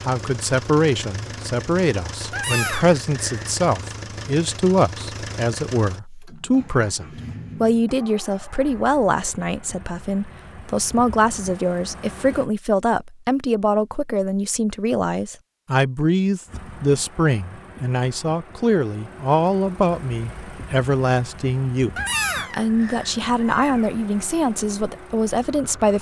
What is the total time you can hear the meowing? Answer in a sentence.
The meowing can be heard for 3 seconds in total.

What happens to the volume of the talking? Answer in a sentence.
The loudness of the talking stays about the same.